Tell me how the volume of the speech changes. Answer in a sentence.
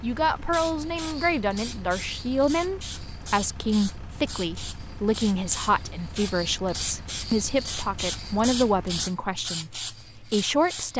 The loudness of the speech stays about the same.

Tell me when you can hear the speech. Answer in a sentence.
The speech can be heard from 0.0 to 10.9 s.